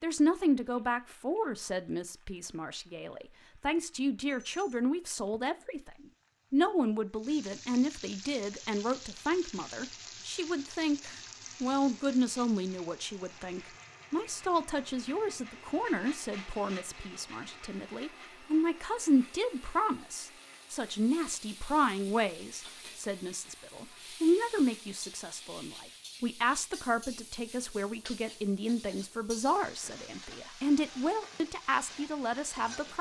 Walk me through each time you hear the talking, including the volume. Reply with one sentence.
The talking can be heard from 0.0 to 32.9 s, at a steady volume.